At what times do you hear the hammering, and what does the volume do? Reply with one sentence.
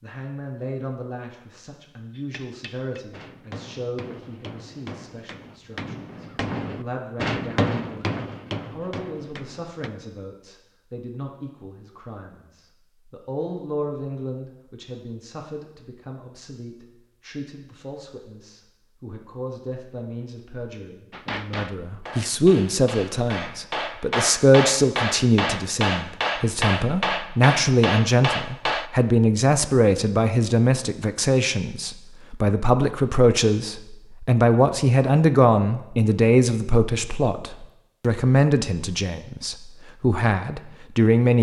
The hammering can be heard from 2.1 to 9.9 s, getting louder then quieter; and from 21.1 to 28.9 s, getting louder.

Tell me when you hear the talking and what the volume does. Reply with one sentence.
You can hear the talking from 0.0 to 41.3 s, getting louder.